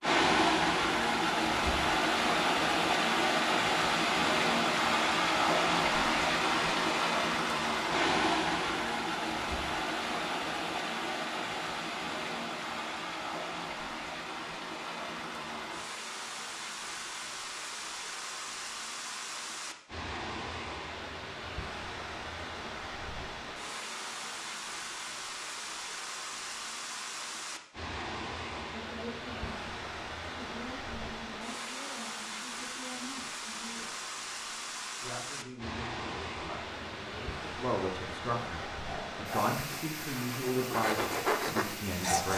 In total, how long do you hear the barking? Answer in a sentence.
You can't hear the barking here.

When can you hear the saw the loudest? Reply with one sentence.
The volume of the saw peaks at 41 seconds.